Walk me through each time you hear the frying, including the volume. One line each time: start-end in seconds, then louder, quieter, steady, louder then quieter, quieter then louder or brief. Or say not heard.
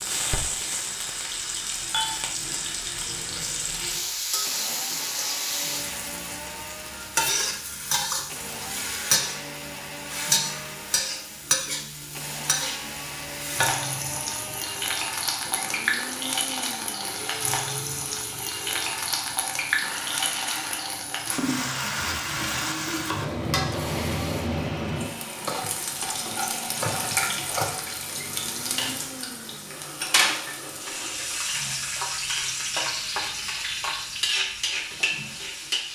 0.0-35.8 steady.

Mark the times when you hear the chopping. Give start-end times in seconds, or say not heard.
25.4-27.8.